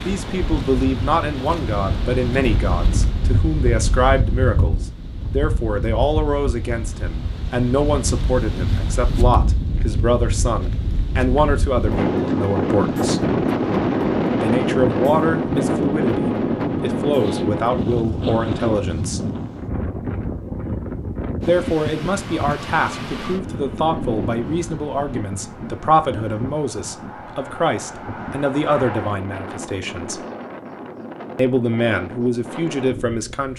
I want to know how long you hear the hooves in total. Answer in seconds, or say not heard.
not heard.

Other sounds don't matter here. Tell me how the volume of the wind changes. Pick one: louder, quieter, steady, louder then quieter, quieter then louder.
louder then quieter.